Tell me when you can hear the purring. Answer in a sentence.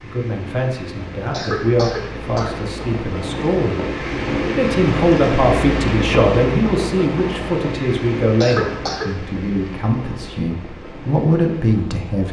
You can't hear the purring here.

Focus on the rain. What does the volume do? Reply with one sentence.
The volume of the rain goes up, then down.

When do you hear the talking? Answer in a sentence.
The talking can be heard from 0.0 to 12.2 s.